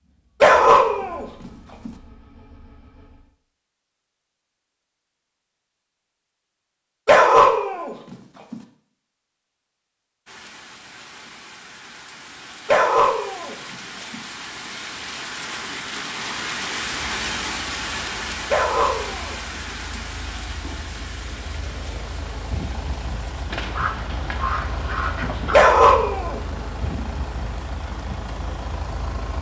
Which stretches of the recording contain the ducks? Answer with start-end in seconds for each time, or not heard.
23.5-25.6.